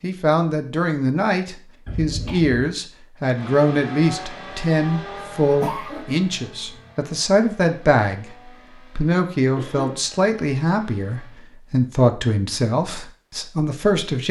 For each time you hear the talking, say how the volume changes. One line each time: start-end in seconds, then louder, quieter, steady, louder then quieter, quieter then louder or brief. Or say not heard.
0.0-14.2 steady.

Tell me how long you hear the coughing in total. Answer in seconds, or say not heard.
2 s.